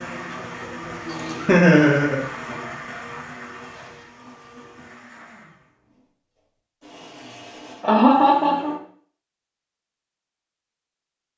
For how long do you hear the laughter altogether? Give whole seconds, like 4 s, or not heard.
2 s.